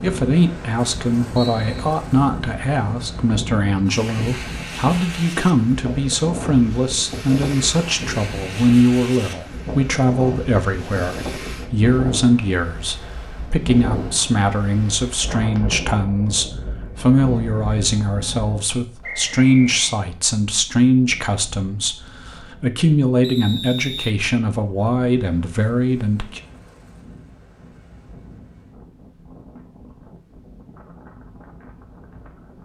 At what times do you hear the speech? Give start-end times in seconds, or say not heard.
0.0-26.4.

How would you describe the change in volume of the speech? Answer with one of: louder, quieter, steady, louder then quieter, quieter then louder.
steady.